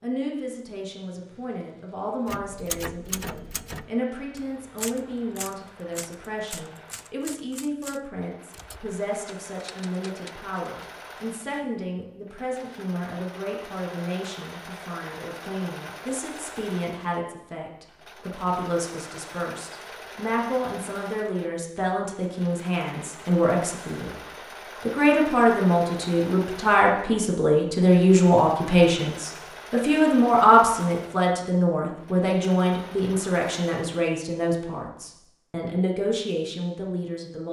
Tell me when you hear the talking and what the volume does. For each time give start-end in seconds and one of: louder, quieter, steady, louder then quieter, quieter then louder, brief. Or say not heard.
0.0-37.4 louder.